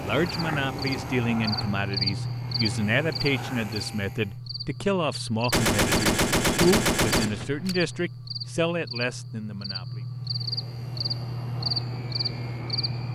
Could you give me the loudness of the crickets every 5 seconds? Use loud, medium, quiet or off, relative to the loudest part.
loud, medium, loud.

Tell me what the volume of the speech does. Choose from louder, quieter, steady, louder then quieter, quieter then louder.
steady.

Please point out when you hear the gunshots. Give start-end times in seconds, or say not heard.
5.5-8.0.